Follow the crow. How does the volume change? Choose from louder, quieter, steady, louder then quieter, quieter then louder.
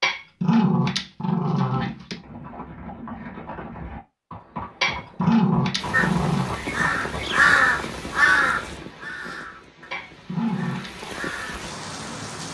louder then quieter.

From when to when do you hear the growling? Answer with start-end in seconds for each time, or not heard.
0.0-2.2, 4.8-6.6, 9.9-10.9.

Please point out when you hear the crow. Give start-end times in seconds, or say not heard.
5.9-11.7.